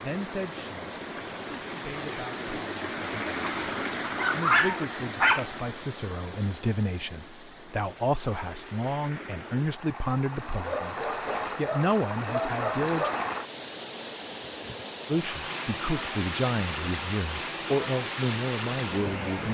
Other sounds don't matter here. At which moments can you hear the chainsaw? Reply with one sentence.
The chainsaw can't be heard in this clip.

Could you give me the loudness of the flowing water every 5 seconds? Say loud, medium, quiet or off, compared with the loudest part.
loud, medium, loud, loud.